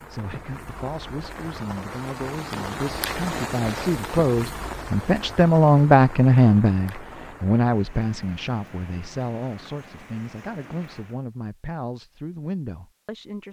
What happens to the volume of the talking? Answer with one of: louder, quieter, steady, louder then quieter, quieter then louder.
louder then quieter.